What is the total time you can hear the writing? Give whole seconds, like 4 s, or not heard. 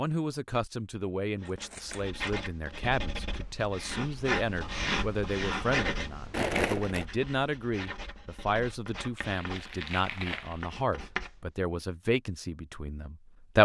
10 s.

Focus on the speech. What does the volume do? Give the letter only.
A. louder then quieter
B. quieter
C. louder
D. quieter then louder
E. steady
E.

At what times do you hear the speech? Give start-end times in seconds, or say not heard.
0.0-13.5.